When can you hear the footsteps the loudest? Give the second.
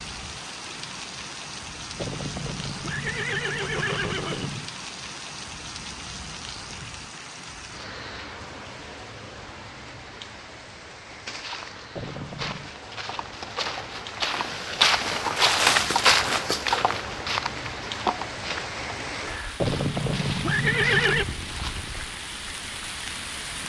16 s.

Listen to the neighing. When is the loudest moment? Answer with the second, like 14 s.
21 s.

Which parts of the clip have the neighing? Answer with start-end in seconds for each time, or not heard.
1.9-4.7, 11.9-12.7, 19.6-21.2.